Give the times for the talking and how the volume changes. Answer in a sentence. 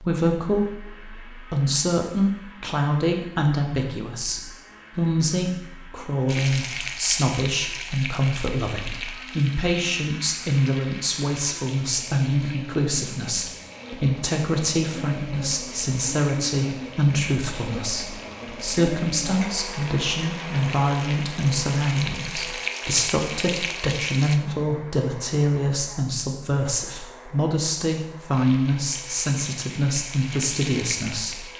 You can hear the talking from 0.0 to 31.4 s, at a steady volume.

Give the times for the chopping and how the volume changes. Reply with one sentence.
You can't hear the chopping here.